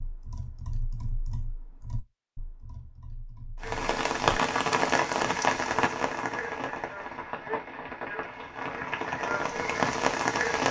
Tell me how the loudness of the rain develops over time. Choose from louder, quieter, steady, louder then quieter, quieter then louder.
quieter then louder.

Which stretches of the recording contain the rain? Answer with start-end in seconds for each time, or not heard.
3.6-10.6.